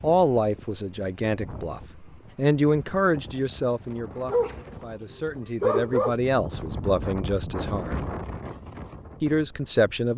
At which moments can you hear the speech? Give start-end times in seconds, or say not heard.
0.0-8.1, 9.2-10.1.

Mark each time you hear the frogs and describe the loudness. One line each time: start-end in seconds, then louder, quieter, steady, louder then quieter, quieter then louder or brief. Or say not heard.
not heard.